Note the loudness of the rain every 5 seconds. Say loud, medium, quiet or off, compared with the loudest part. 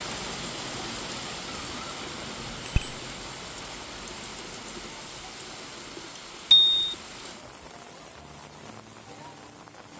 loud, medium.